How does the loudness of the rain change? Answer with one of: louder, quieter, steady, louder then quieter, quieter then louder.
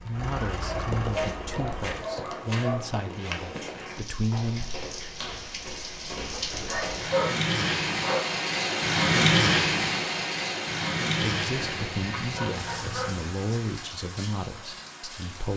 louder then quieter.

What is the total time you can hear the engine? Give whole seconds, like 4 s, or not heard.
2 s.